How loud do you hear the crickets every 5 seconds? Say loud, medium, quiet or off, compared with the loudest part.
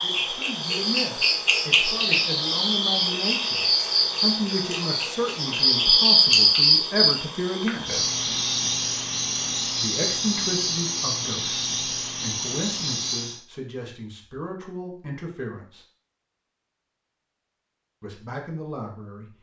loud, loud, medium, off.